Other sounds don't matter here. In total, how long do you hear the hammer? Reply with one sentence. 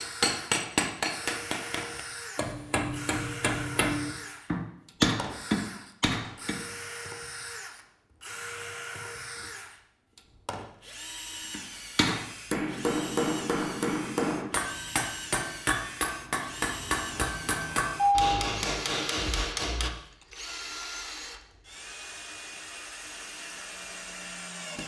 You can hear the hammer for 15 seconds altogether.